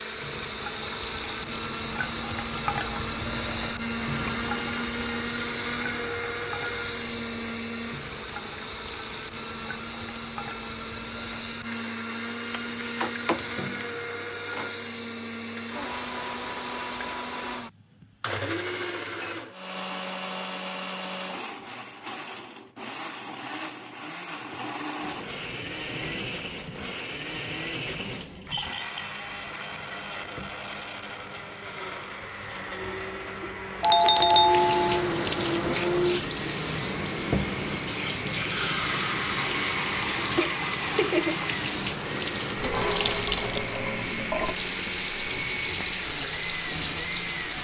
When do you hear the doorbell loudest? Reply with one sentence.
The volume of the doorbell peaks at 34 seconds.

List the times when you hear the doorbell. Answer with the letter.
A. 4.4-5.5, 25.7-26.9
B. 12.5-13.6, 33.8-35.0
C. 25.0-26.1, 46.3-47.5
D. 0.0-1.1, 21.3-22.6
B.